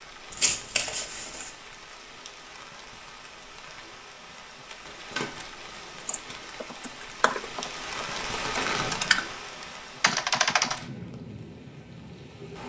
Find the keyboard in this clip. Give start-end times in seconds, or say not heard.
6.0-10.8.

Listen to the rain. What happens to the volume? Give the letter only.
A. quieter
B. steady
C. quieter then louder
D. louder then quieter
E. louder
D.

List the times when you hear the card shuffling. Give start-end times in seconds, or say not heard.
0.3-1.5, 4.8-6.0, 8.4-9.2.